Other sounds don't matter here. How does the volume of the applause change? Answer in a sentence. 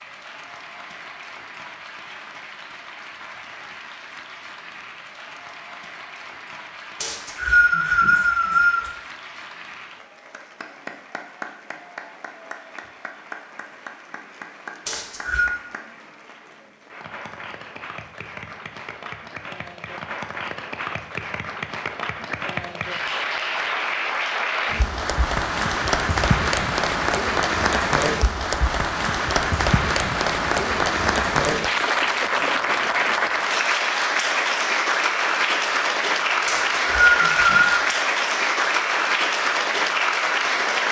The volume of the applause goes up.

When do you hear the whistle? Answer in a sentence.
The whistle can be heard from 7.0 to 8.9 s, from 14.8 to 15.5 s and from 36.5 to 37.9 s.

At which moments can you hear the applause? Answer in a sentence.
You can hear the applause from 0.0 to 40.8 s.